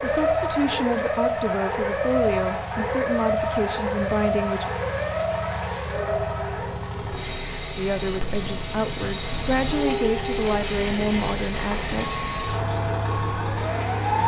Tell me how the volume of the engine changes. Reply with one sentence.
The volume of the engine goes up.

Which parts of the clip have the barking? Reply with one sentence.
The barking can't be heard in this clip.